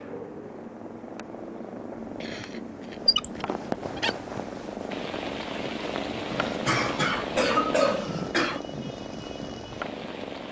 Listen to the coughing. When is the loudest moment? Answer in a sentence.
The loudest moment of the coughing is at 8 seconds.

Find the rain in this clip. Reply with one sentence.
The rain can be heard from 4.9 to 10.4 s.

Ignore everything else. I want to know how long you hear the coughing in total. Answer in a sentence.
The coughing can be heard for 3 seconds in total.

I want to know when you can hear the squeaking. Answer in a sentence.
The squeaking can be heard from 3.0 to 4.2 s.